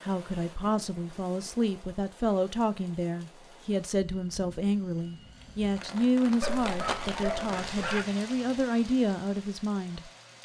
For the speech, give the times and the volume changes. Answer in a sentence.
The speech can be heard from 0.0 to 10.1 s, at a steady volume.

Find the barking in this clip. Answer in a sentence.
The barking can be heard from 6.4 to 8.1 s.